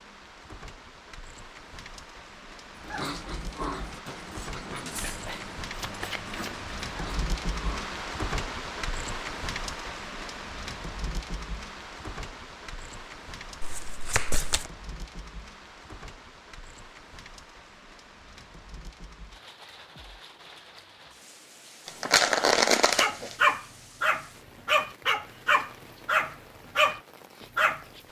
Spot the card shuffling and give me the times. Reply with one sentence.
The card shuffling can be heard from 5.0 to 6.7 s, from 13.6 to 14.7 s and from 21.9 to 23.4 s.